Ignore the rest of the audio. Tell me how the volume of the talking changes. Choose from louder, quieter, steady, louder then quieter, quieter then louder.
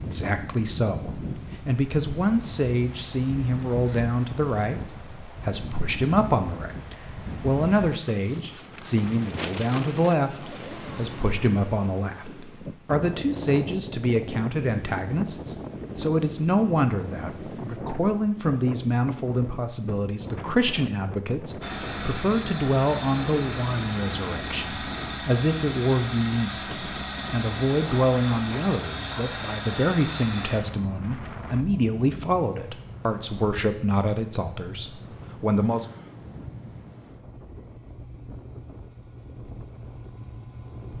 steady.